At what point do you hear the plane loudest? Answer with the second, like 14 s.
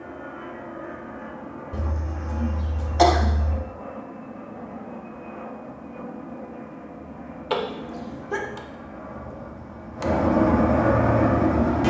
11 s.